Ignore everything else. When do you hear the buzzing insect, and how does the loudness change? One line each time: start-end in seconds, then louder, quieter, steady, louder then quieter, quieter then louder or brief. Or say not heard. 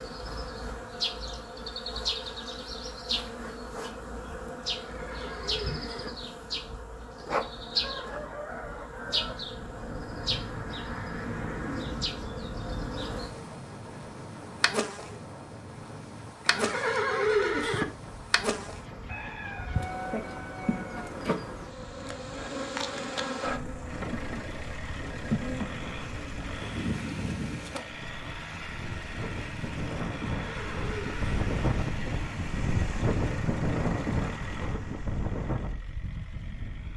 0.0-27.8 steady.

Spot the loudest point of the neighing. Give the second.
17 s.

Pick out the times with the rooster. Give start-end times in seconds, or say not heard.
7.7-9.4, 19.1-21.1.